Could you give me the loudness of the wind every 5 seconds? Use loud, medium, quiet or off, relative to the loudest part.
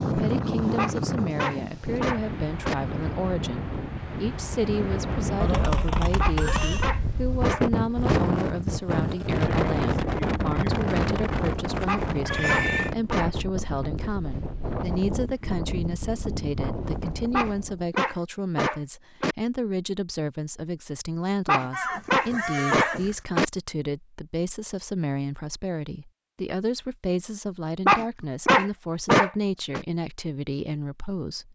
loud, loud, loud, medium, off, off, off.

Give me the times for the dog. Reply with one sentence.
You can hear the dog from 0.8 to 2.8 s, from 6.2 to 8.2 s, from 11.8 to 13.3 s, from 17.3 to 19.4 s, from 21.4 to 23.4 s and from 27.9 to 29.8 s.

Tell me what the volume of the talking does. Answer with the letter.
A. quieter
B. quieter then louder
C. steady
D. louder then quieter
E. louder
C.